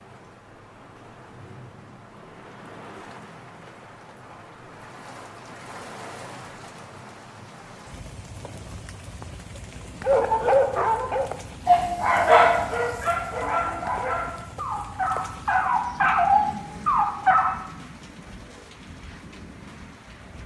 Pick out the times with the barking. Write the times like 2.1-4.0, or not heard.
10.0-17.6.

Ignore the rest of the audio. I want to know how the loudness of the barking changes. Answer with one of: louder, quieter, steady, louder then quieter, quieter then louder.
quieter then louder.